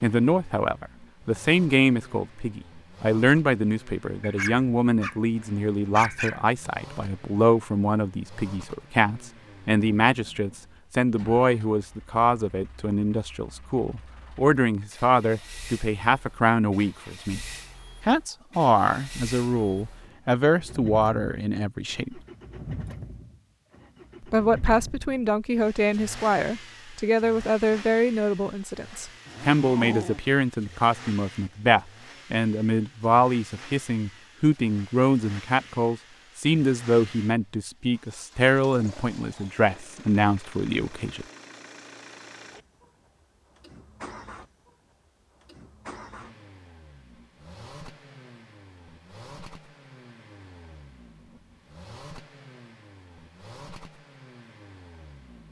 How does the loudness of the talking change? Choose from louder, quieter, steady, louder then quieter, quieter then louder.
steady.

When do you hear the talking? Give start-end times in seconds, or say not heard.
0.0-17.4, 18.1-22.2, 24.2-41.2.